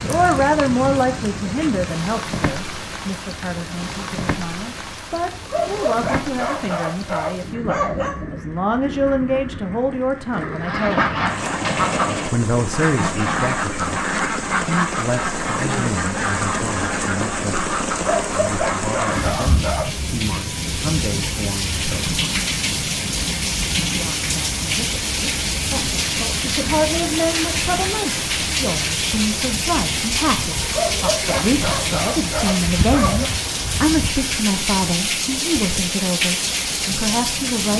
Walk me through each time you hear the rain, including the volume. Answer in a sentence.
The rain can be heard from 0.0 to 37.7 s, getting louder.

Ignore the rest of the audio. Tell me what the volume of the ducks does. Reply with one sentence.
The volume of the ducks goes down.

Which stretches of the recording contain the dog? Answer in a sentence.
You can hear the dog from 5.5 to 8.2 s, from 18.0 to 20.1 s and from 30.7 to 33.3 s.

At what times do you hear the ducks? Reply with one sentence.
The ducks can be heard from 10.6 to 19.5 s.